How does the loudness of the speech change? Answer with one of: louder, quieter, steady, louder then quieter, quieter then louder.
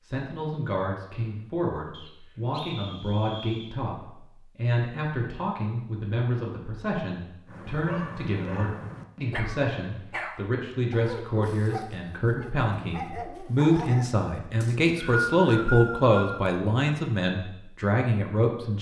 louder.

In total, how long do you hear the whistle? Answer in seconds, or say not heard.
4 s.